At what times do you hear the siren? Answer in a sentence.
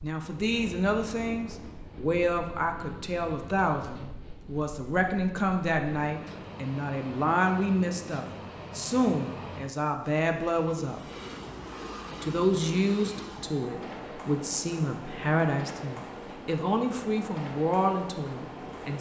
The siren can't be heard in this clip.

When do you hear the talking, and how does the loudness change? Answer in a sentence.
The talking can be heard from 0.0 to 11.0 s, at a steady volume; and from 12.2 to 18.9 s, at a steady volume.